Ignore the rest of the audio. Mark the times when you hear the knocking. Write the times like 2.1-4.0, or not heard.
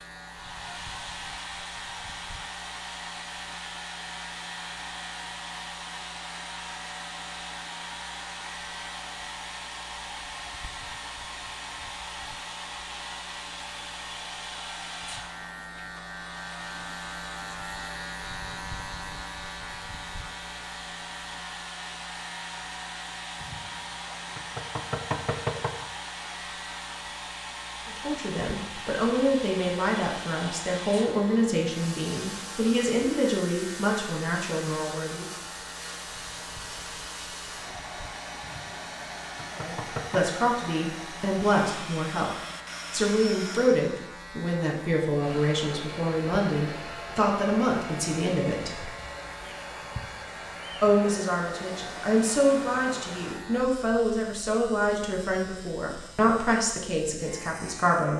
23.4-25.9, 38.4-40.2.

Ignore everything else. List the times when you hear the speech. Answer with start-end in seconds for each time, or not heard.
27.9-35.2, 39.5-42.3, 42.9-48.9, 50.8-58.1.